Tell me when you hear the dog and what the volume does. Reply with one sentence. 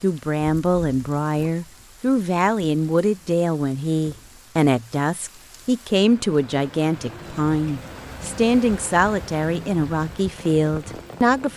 The dog can't be heard in this clip.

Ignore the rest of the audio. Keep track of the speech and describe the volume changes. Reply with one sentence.
The volume of the speech stays about the same.